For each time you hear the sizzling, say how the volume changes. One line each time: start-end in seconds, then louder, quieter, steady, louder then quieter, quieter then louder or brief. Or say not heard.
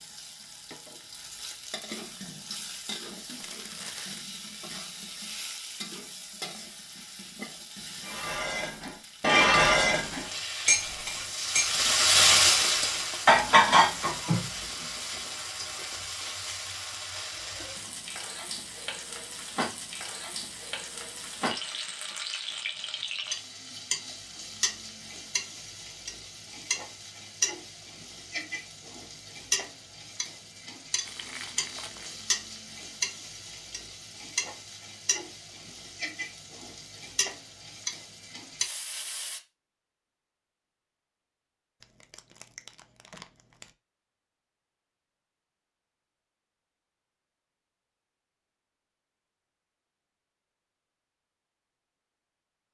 0.0-39.4 louder then quieter.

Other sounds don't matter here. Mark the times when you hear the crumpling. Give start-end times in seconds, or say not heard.
3.2-4.2, 31.1-32.2, 41.8-43.7.